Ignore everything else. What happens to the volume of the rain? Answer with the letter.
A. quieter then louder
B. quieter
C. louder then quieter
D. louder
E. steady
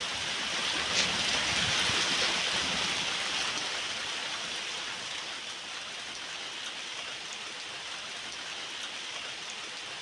B.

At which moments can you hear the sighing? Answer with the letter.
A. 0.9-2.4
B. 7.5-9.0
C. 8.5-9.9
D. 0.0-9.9
A.